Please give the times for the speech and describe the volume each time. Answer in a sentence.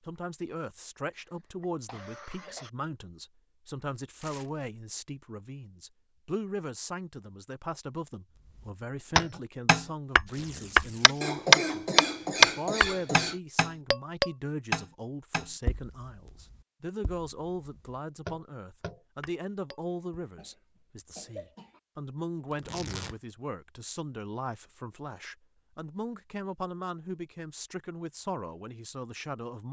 The speech can be heard from 0.1 to 29.6 s, at a steady volume.